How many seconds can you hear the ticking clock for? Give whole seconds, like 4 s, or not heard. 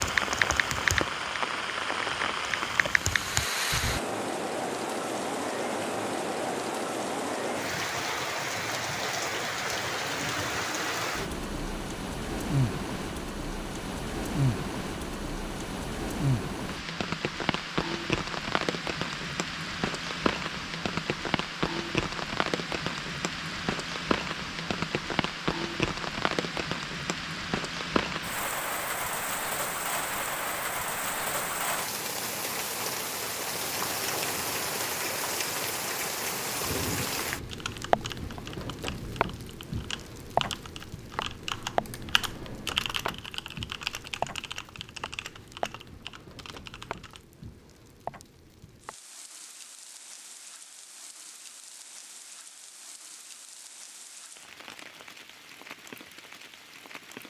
not heard.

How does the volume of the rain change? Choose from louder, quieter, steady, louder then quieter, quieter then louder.
quieter.